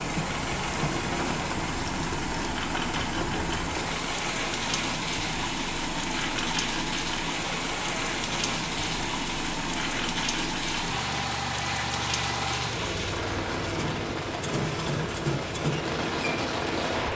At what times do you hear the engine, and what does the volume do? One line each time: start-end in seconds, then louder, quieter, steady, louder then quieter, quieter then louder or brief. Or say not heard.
0.0-17.1 steady.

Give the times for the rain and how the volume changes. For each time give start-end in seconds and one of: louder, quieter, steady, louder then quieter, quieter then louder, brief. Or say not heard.
0.0-17.1 steady.